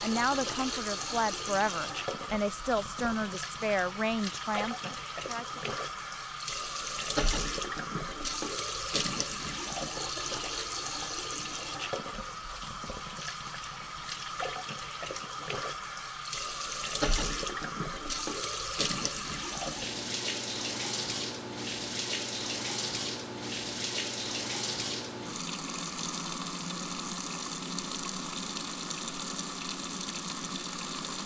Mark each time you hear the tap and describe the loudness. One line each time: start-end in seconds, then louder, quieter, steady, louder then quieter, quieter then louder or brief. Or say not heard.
0.0-31.2 steady.